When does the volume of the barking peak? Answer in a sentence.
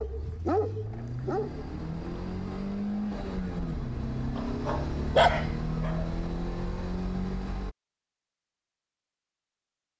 The volume of the barking peaks at 5 seconds.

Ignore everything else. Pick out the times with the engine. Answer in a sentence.
You can hear the engine from 0.0 to 7.8 s.